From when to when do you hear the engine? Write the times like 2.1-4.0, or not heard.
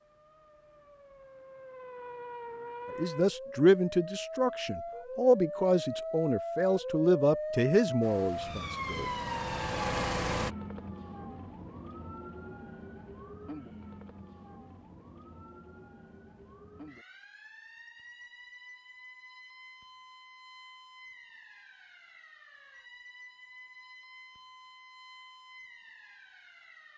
8.0-10.6.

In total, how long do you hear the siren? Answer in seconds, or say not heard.
27 s.